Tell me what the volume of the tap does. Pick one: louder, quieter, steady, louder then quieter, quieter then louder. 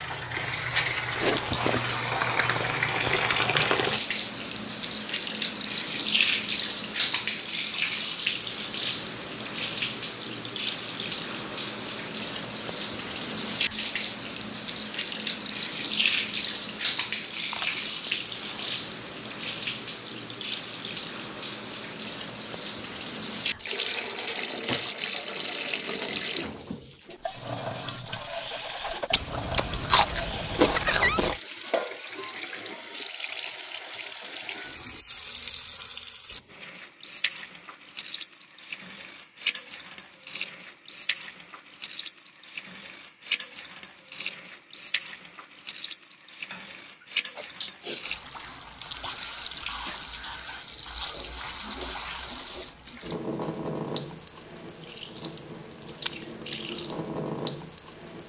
quieter.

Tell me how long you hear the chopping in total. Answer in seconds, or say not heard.
not heard.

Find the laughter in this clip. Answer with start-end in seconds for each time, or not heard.
30.6-31.2.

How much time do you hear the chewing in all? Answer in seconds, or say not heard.
7 s.